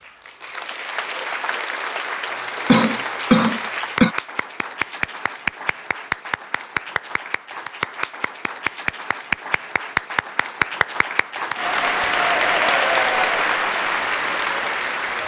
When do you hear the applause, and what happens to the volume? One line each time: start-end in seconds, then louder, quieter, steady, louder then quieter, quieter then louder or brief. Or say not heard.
0.0-15.2 louder.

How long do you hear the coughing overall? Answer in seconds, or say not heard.
2 s.